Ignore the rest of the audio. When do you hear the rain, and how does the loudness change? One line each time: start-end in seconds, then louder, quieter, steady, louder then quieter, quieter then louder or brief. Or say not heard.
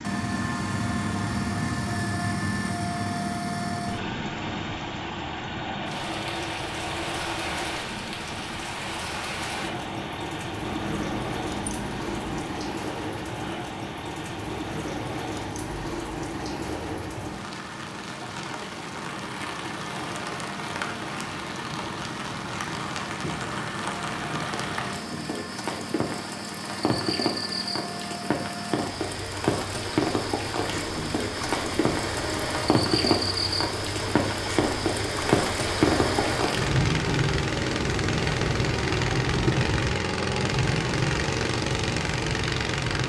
0.0-43.0 louder.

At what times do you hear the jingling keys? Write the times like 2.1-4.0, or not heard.
10.7-12.3.